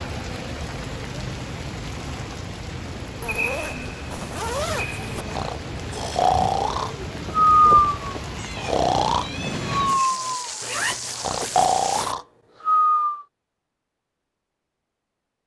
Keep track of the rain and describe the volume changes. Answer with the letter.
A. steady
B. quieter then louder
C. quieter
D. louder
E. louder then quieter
A.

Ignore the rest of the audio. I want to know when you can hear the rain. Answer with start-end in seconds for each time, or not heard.
0.0-12.1.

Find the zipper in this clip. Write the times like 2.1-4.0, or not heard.
3.2-5.2, 10.6-12.2.